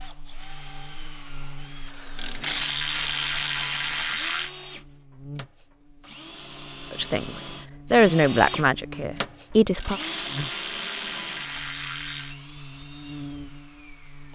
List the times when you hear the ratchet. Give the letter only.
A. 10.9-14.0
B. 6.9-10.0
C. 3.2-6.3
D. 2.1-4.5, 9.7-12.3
D.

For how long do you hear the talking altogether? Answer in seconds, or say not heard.
3 s.